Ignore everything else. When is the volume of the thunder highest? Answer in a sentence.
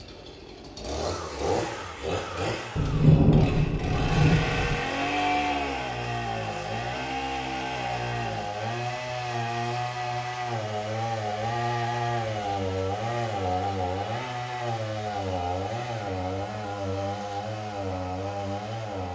The loudest moment of the thunder is at 3 seconds.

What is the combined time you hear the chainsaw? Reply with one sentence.
You can hear the chainsaw for 19 seconds altogether.